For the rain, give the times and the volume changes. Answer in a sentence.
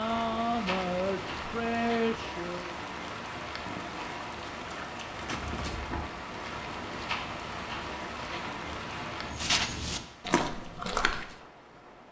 The rain can be heard from 0.0 to 12.0 s, getting quieter.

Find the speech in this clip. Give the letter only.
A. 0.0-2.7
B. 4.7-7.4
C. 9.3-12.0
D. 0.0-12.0
A.